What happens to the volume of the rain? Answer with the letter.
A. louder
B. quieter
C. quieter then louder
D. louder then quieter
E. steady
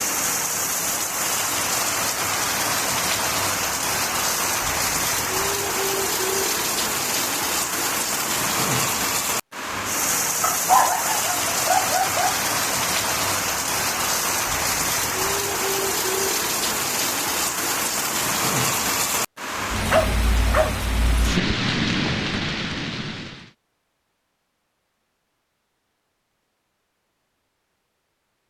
E.